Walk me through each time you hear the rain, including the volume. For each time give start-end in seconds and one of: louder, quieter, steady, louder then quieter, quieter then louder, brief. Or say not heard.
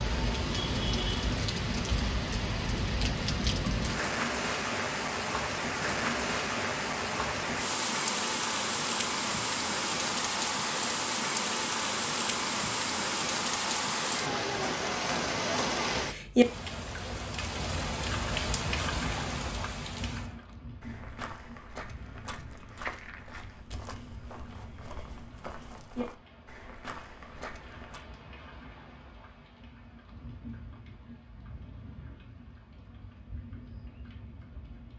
0.0-34.9 quieter.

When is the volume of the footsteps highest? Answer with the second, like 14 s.
23 s.